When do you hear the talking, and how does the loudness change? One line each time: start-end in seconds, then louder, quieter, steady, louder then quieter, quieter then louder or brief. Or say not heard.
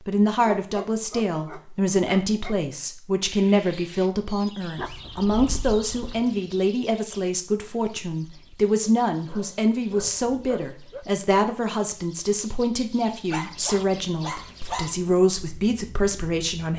0.1-16.7 steady.